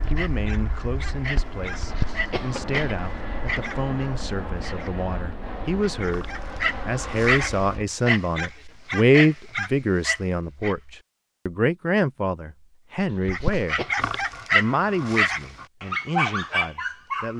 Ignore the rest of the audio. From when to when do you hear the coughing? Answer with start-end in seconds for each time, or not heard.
1.8-3.0, 12.9-13.9.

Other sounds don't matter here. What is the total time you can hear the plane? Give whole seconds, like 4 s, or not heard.
8 s.